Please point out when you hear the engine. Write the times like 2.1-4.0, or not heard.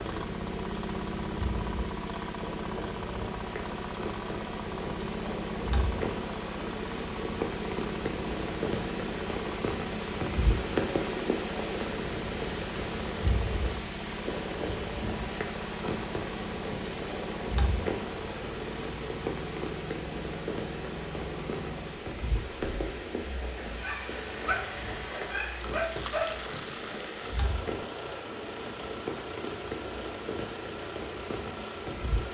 0.0-32.2.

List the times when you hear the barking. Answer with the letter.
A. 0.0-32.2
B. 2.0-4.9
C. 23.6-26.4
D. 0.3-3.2
C.